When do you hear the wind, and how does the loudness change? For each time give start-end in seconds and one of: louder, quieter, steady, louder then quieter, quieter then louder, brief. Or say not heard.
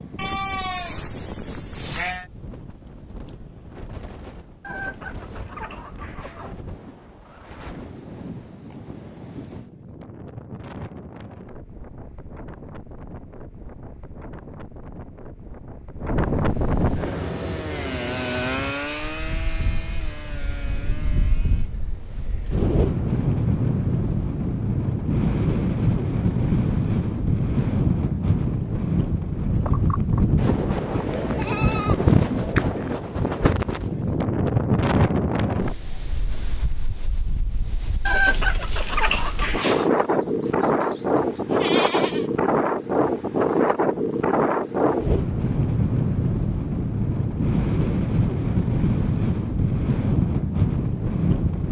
0.0-51.6 louder.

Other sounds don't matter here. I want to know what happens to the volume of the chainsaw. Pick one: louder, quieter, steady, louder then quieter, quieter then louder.
louder then quieter.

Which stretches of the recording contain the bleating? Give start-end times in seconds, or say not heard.
0.1-2.3, 30.9-33.0, 39.9-42.3.